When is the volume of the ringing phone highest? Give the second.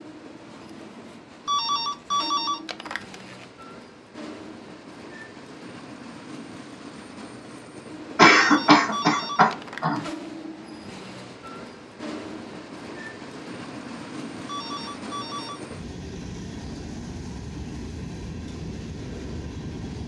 2 s.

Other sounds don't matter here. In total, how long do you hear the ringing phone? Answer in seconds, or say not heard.
5 s.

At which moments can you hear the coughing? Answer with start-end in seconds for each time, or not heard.
8.2-10.1.